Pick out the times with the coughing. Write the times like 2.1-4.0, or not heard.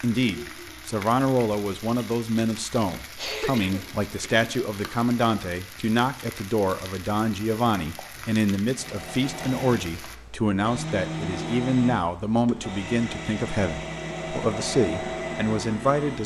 3.1-4.5.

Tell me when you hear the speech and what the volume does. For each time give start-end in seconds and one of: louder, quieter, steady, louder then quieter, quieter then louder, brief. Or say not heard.
0.0-16.2 steady.